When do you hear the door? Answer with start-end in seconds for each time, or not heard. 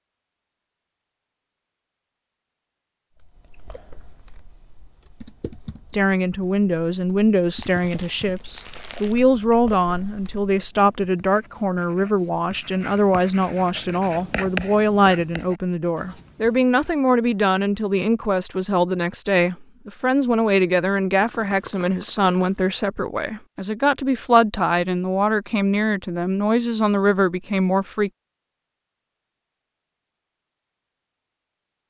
not heard.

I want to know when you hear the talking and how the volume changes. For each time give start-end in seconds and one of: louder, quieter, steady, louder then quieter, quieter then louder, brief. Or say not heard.
5.9-28.1 steady.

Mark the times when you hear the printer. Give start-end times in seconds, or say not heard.
not heard.